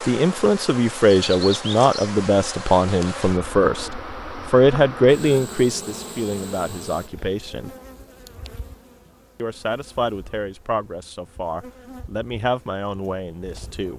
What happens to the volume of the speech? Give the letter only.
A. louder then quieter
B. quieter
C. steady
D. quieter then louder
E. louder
B.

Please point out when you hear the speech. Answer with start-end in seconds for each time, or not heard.
0.0-7.8, 9.3-13.9.